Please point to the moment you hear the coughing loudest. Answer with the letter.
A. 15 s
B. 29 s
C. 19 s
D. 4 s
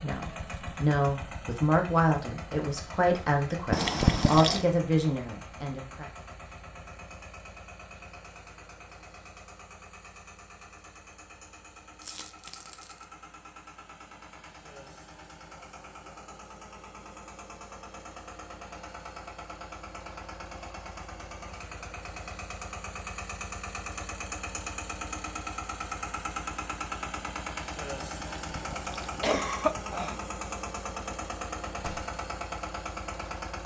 D.